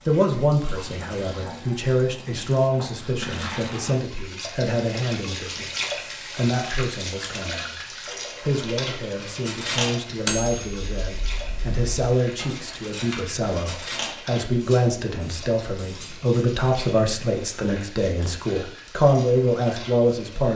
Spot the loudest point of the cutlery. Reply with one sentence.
The volume of the cutlery peaks at 10 seconds.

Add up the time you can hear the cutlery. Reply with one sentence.
The cutlery can be heard for 7 seconds in total.